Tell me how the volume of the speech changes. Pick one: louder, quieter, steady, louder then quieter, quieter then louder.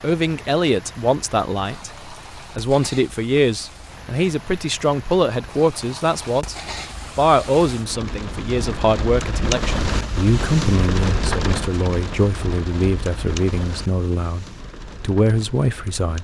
steady.